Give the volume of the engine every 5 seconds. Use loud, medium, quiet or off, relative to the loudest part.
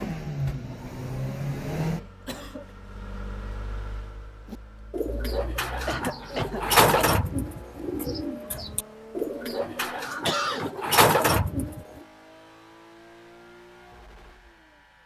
loud, medium, quiet.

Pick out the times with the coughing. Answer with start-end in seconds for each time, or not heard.
1.9-2.6, 5.8-7.2, 10.2-10.7.